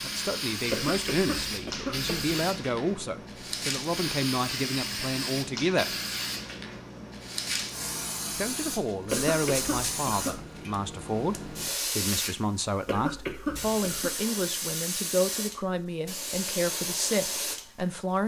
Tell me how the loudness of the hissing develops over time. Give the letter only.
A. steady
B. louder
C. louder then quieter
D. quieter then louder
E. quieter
A.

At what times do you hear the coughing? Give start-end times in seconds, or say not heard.
0.7-2.3, 9.1-10.4, 12.8-14.2.